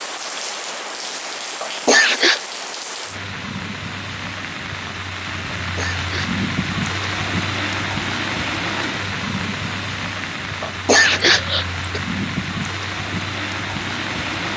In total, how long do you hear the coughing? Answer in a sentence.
You can hear the coughing for 3 seconds altogether.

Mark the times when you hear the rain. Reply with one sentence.
The rain can be heard from 0.0 to 14.5 s.